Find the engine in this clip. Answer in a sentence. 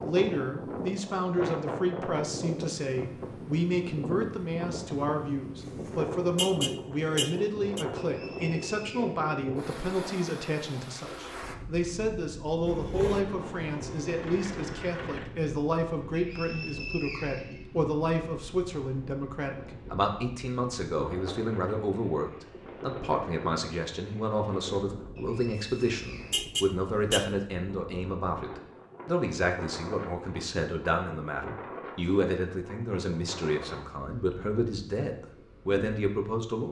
The engine can be heard from 12.7 to 15.3 s.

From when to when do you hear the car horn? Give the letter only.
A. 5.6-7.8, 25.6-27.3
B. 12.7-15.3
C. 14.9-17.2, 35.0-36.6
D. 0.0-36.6
A.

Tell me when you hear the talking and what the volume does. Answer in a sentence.
The talking can be heard from 0.0 to 36.6 s, at a steady volume.